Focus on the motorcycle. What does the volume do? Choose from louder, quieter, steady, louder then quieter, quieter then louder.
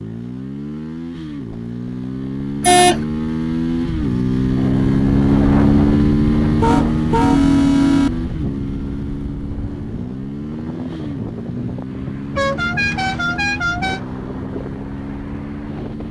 louder then quieter.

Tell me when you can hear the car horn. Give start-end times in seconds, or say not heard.
2.6-3.0, 6.6-8.1, 12.3-14.0.